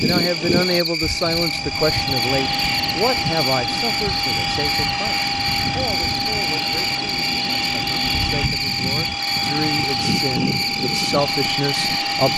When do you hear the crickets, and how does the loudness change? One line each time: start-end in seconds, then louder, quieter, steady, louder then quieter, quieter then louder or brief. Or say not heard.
0.0-12.3 steady.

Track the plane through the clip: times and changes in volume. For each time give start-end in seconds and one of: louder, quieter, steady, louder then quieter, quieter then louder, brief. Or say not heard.
0.0-12.3 steady.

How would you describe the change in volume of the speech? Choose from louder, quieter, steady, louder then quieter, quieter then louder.
quieter then louder.